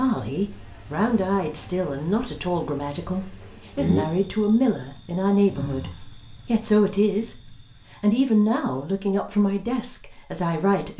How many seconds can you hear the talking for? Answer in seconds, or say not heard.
10 s.